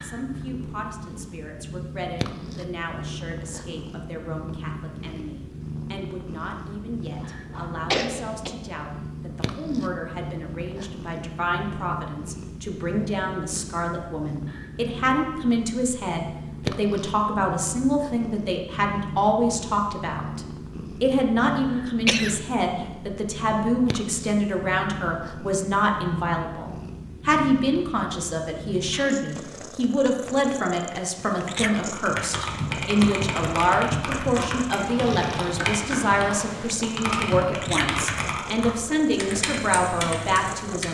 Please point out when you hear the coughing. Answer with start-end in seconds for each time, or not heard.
7.1-8.5, 22.1-22.9.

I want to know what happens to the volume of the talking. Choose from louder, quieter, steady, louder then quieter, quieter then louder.
louder.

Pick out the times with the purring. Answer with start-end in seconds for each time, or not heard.
0.0-40.8.